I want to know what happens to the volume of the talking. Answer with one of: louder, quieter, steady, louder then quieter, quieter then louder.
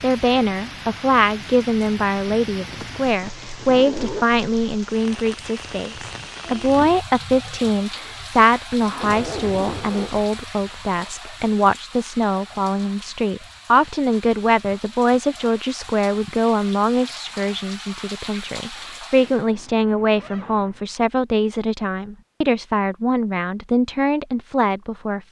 steady.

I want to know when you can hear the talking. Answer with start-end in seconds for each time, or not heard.
0.0-25.2.